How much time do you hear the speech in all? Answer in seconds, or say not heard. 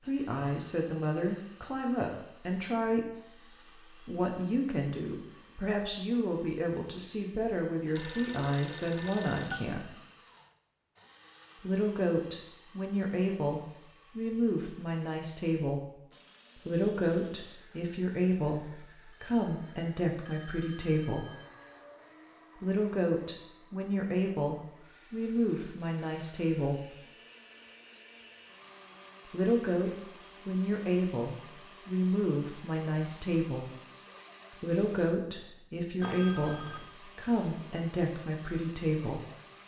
33 s.